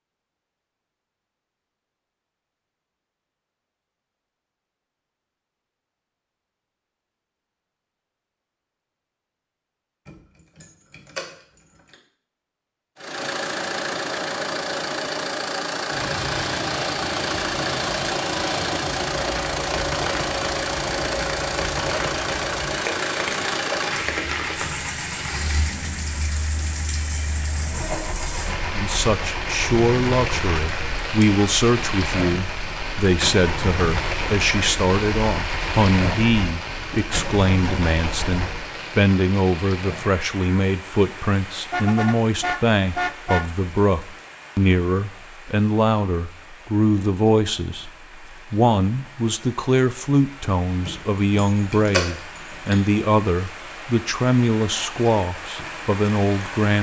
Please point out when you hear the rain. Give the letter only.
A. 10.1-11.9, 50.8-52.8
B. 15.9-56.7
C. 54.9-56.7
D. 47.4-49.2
B.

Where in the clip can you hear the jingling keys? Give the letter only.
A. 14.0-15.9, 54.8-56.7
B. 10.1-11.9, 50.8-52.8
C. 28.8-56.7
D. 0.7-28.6
B.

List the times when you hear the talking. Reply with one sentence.
You can hear the talking from 28.8 to 56.7 s.